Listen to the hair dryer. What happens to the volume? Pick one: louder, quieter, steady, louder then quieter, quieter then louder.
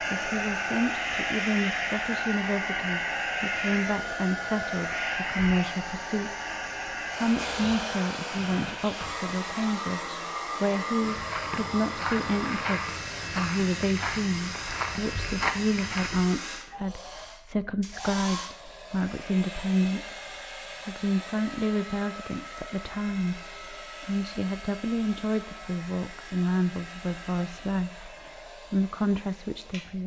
quieter.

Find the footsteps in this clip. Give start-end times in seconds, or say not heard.
11.0-16.3.